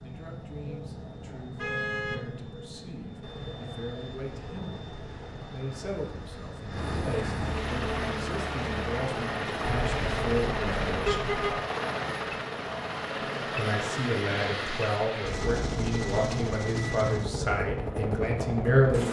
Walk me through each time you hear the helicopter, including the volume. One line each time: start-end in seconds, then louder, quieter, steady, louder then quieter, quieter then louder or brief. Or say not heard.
0.0-19.0 louder.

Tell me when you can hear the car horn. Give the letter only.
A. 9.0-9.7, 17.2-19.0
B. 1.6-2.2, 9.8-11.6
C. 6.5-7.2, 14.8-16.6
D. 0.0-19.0
B.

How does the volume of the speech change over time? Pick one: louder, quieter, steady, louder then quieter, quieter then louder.
louder.